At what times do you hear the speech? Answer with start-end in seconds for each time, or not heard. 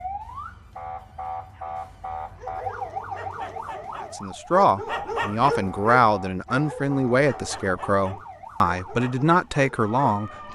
4.1-10.5.